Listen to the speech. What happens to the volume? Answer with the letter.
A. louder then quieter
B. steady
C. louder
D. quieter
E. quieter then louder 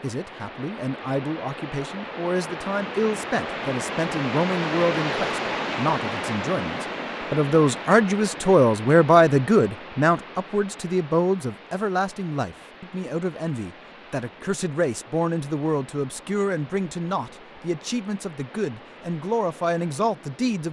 A.